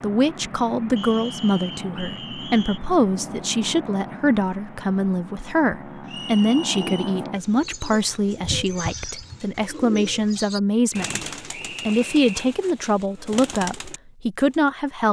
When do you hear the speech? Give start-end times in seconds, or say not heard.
0.0-11.2, 11.8-15.0.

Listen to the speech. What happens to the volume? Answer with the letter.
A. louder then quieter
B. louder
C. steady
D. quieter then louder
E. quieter
C.